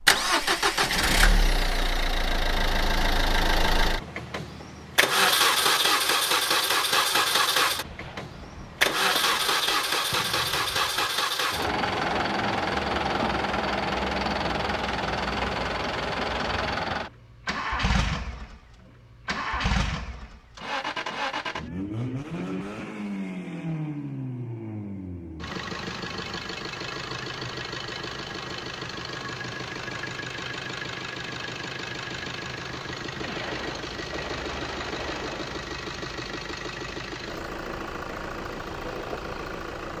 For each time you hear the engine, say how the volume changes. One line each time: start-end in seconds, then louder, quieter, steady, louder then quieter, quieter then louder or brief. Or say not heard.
0.0-39.9 quieter.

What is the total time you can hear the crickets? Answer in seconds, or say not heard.
not heard.